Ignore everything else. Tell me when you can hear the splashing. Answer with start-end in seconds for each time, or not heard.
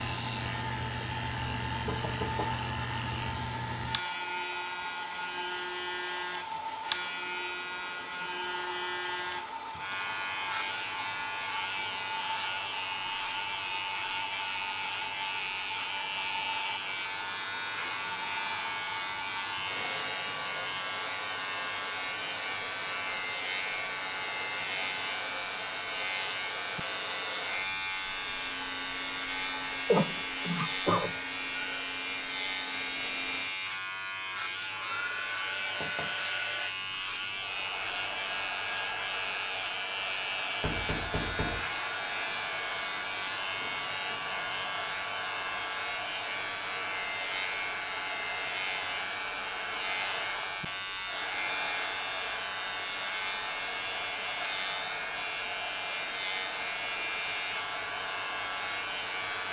not heard.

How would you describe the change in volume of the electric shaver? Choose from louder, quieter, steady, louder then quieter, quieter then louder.
steady.